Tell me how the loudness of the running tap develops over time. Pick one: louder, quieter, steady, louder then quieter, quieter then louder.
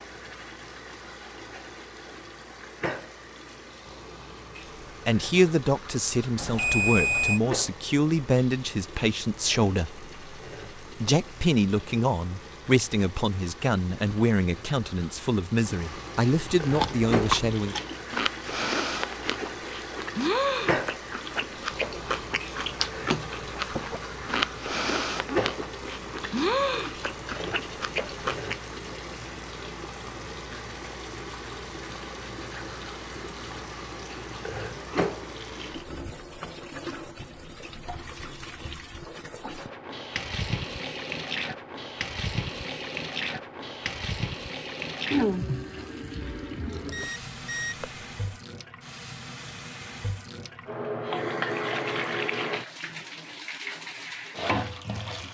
louder.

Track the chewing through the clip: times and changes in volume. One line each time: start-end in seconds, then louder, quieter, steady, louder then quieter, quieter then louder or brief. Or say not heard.
16.6-28.6 steady.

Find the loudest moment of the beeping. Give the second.
7 s.